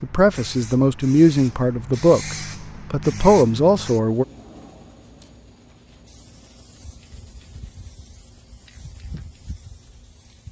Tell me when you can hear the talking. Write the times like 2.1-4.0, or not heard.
0.0-4.2.